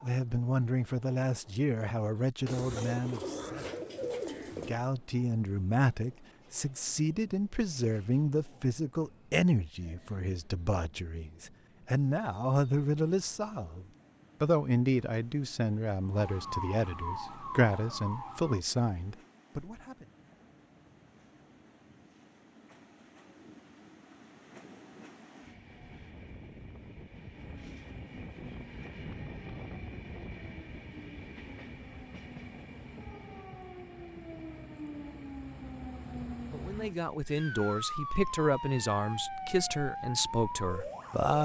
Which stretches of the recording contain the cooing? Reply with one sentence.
You can hear the cooing from 2.5 to 4.8 s.